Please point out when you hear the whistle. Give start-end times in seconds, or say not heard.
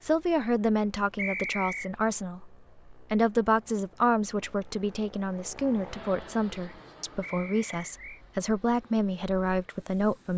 1.1-1.9, 7.2-8.2.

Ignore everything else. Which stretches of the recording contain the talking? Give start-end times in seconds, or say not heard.
0.0-10.3.